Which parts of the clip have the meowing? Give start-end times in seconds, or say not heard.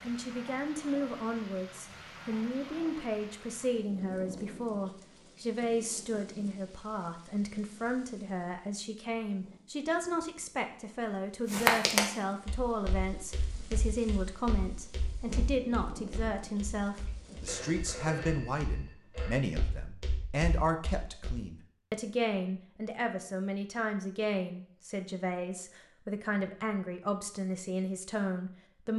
not heard.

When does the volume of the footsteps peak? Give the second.
12 s.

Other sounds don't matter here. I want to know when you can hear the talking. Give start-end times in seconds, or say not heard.
0.0-28.9.